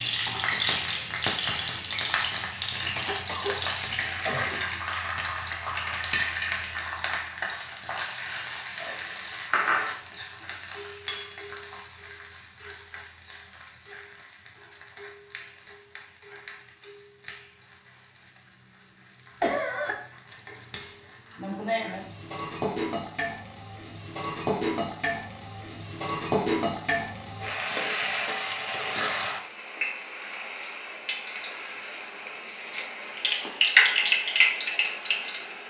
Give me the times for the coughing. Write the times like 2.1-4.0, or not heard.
3.0-4.6, 19.4-19.9.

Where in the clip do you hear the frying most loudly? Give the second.
34 s.